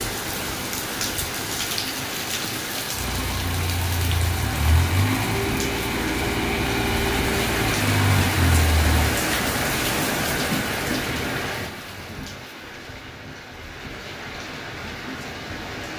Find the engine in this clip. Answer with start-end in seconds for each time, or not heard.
2.9-9.1.